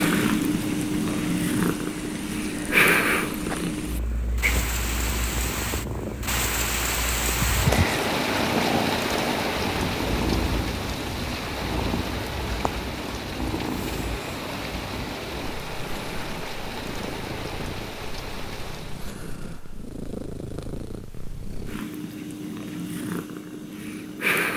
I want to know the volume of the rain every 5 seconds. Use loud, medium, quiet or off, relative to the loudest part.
medium, loud, medium, medium, off.